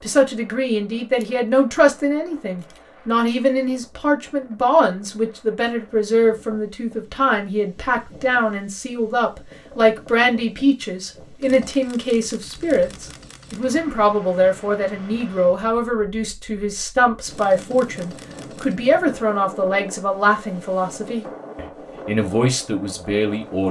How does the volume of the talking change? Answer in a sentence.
The loudness of the talking stays about the same.